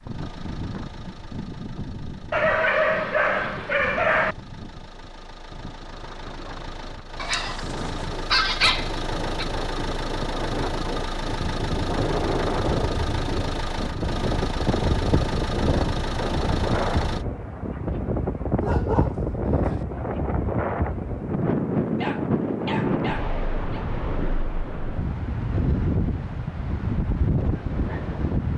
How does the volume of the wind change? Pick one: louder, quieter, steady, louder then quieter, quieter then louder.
louder.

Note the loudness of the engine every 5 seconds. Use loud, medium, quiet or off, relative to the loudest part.
quiet, loud, loud, loud, off, off.